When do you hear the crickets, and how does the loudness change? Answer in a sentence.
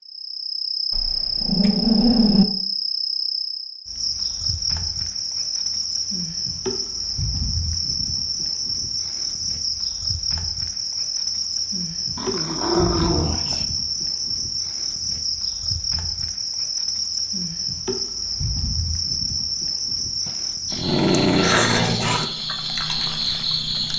The crickets can be heard from 0.0 to 23.9 s, at a steady volume.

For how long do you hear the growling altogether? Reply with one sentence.
The growling can be heard for 5 seconds in total.